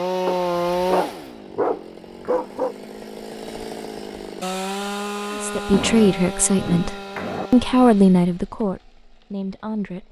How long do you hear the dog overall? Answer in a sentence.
You can hear the dog for 4 seconds altogether.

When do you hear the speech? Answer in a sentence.
The speech can be heard from 5.3 to 10.0 s.